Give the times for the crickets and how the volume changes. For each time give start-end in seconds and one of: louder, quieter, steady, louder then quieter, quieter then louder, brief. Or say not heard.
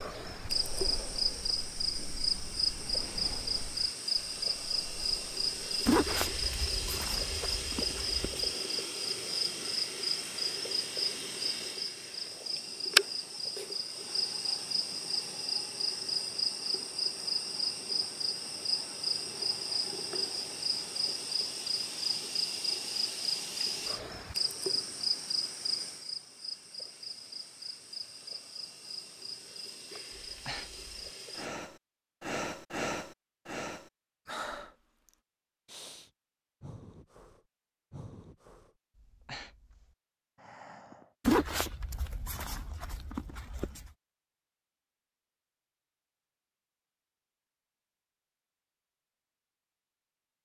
0.0-31.5 quieter.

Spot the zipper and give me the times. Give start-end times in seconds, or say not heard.
5.8-8.5, 41.2-43.9.